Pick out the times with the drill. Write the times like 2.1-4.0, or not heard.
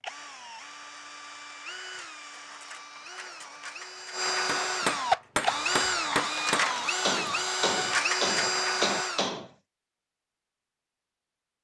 0.0-9.3.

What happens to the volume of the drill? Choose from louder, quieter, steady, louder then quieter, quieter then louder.
louder.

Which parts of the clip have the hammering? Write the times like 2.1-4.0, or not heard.
4.5-9.5.